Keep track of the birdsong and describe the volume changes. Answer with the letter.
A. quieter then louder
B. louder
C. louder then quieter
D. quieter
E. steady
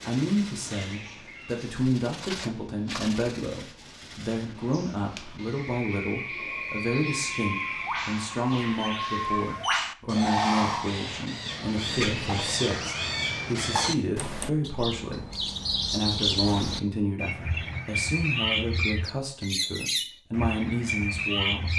B.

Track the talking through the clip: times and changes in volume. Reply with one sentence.
You can hear the talking from 0.0 to 21.7 s, at a steady volume.